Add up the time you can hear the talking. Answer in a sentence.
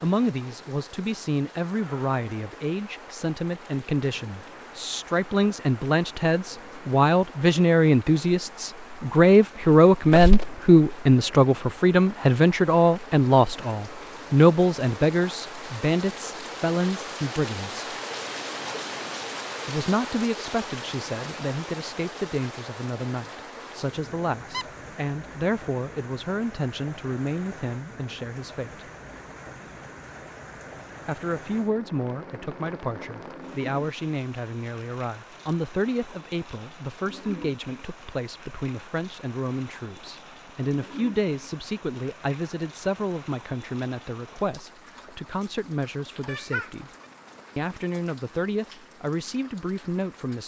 The talking can be heard for 46 seconds in total.